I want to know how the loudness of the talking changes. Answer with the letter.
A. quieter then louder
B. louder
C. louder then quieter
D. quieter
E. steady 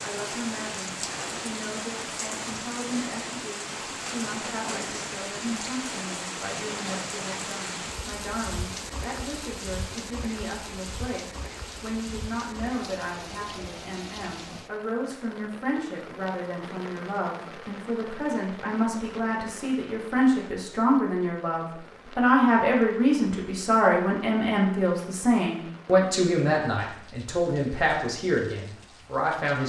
B.